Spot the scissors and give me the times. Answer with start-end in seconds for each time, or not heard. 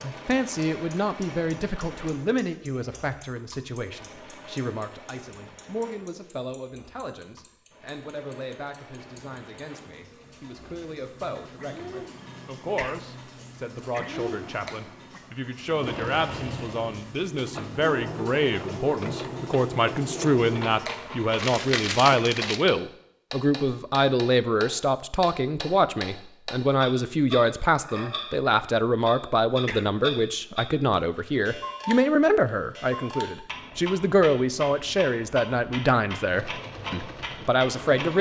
not heard.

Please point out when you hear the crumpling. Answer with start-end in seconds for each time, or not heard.
21.4-22.6.